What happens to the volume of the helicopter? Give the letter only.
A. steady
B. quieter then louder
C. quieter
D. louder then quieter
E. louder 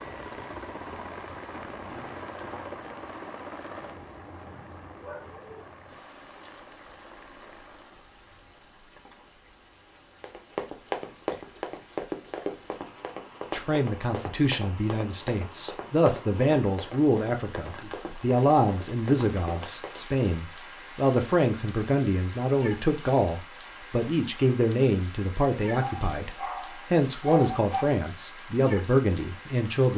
C.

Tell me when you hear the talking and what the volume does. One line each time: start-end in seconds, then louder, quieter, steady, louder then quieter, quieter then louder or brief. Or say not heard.
13.5-29.9 steady.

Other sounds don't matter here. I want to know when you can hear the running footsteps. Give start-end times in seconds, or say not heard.
10.2-20.2.